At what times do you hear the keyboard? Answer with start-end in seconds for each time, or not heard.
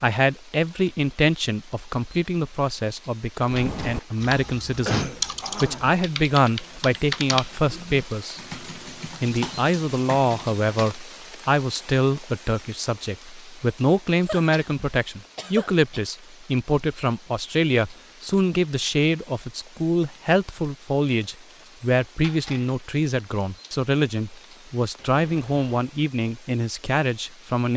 3.5-10.9.